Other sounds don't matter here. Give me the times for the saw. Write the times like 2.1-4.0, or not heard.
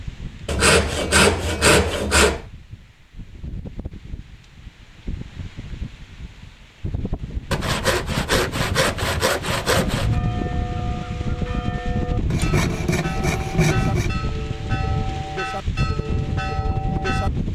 0.5-2.5, 7.5-10.1, 12.3-14.1.